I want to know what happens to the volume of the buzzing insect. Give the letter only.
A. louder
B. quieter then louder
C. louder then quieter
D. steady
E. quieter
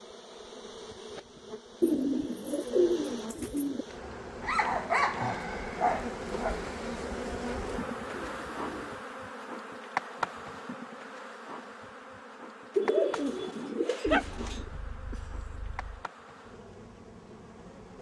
C.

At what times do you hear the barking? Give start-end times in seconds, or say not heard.
4.4-6.7, 14.1-16.0.